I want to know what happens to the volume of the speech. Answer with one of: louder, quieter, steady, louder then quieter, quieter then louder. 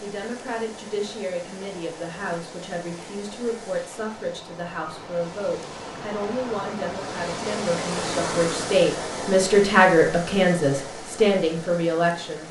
louder.